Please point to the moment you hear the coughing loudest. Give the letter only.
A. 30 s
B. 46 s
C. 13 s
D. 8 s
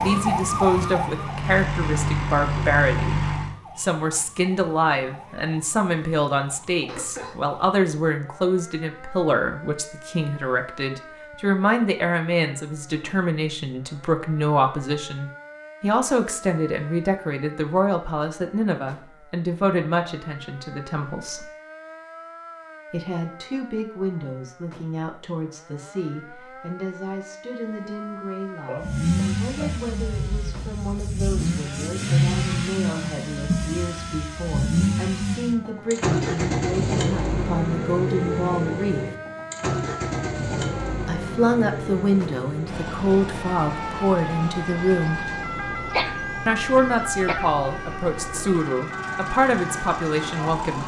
B.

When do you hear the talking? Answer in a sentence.
You can hear the talking from 0.0 to 21.4 s, from 22.9 to 39.0 s, from 41.0 to 45.2 s and from 46.5 to 50.8 s.